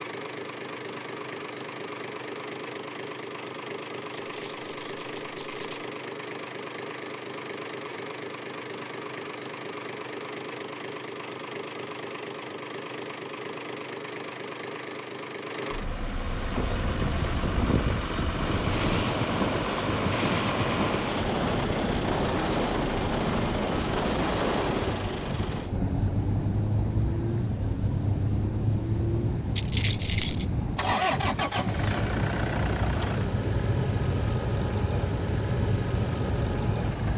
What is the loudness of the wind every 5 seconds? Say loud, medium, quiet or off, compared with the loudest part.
off, off, off, loud, loud, loud, loud, loud.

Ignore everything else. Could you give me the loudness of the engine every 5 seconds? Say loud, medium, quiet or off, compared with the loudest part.
medium, medium, medium, loud, loud, loud, loud, loud.